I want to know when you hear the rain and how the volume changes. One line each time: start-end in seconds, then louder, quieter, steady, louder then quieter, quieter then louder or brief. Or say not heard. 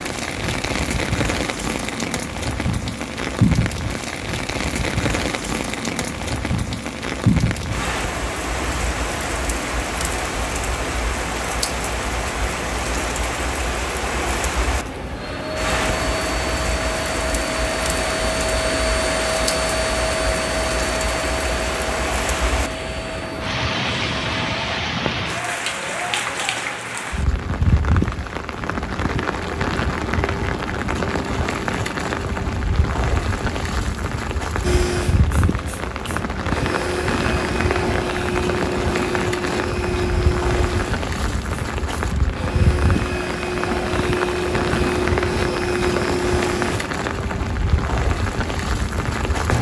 0.0-49.5 steady.